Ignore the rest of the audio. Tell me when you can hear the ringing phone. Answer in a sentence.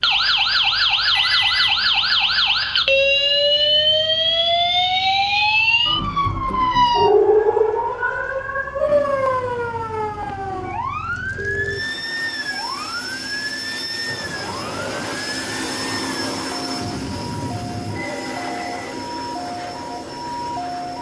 You can hear the ringing phone from 1.1 to 1.8 s, from 11.3 to 11.8 s and from 17.9 to 18.9 s.